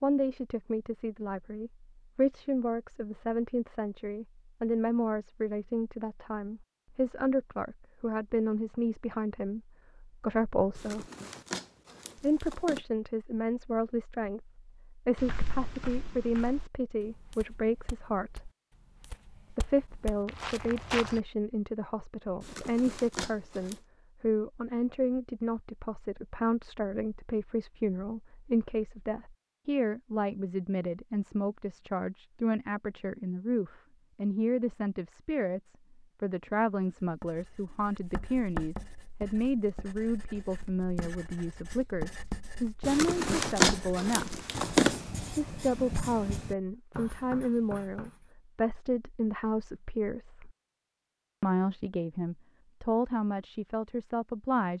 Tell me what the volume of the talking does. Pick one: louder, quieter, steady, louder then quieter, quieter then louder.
steady.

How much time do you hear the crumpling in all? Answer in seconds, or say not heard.
6 s.